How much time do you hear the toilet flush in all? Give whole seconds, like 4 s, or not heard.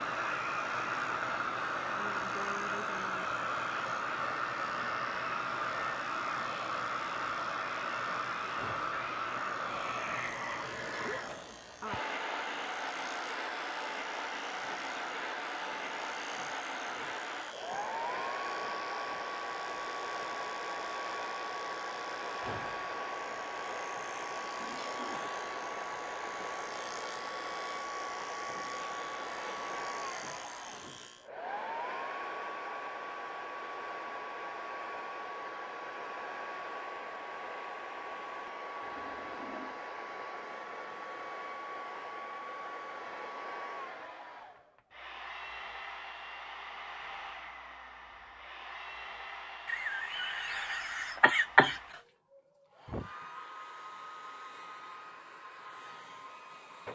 2 s.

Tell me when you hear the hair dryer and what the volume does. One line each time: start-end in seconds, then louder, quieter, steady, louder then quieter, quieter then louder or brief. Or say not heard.
0.0-56.9 quieter.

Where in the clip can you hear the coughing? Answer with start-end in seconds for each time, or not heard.
49.6-51.8.